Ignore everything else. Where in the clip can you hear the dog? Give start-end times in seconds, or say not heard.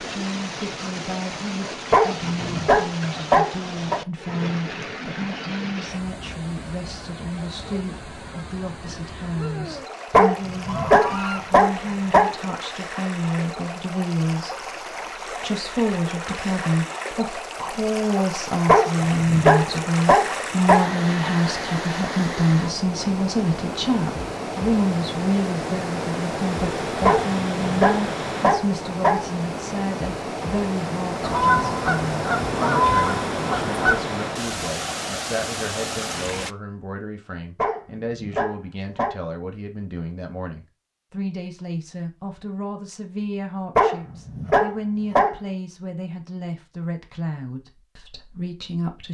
1.9-4.0, 10.1-12.3, 18.6-20.9, 27.0-29.6, 37.5-39.1, 43.8-45.4.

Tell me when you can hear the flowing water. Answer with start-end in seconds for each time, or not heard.
0.0-36.5.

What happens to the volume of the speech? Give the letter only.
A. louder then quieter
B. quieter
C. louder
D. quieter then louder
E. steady
A.